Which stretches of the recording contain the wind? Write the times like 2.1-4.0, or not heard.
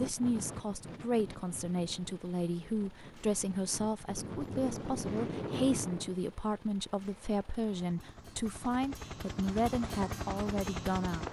0.0-6.2.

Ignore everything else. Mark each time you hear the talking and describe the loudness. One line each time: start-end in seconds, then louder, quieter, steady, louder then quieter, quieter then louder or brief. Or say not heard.
0.0-11.2 steady.